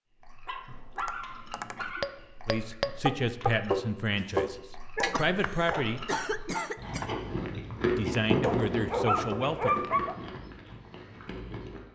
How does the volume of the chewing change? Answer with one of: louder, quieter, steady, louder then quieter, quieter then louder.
louder then quieter.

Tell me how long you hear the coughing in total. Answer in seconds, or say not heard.
2 s.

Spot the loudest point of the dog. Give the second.
10 s.